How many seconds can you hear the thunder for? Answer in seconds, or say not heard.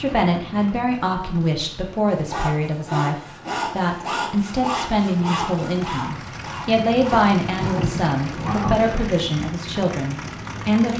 2 s.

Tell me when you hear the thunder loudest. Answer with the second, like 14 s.
9 s.